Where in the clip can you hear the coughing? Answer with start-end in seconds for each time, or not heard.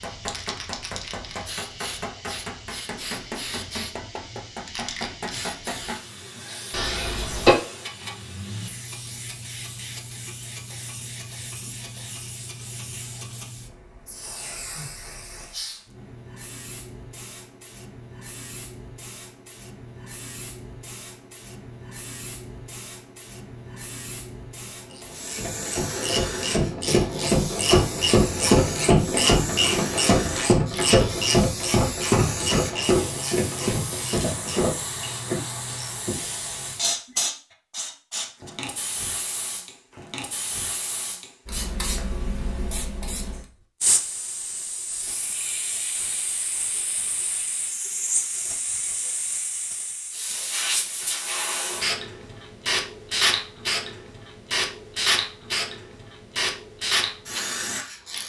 6.7-7.5.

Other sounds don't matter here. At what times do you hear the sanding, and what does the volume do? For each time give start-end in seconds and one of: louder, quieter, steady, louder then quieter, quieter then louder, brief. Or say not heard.
not heard.